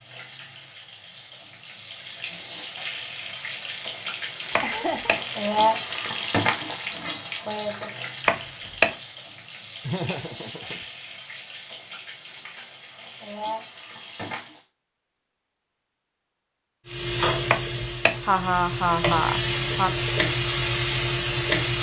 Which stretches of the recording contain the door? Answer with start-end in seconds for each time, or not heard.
4.5-5.2, 8.2-8.9, 17.5-18.1.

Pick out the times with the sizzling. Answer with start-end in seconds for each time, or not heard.
0.0-14.7, 16.9-21.7.